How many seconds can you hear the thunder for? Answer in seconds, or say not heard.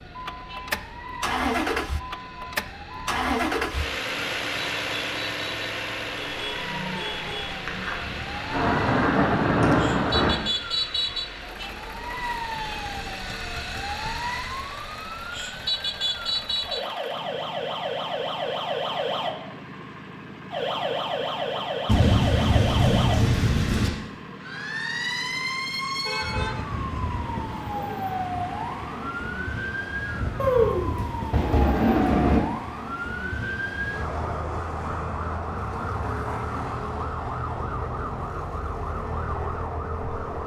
7 s.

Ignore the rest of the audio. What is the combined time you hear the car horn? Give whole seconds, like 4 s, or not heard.
3 s.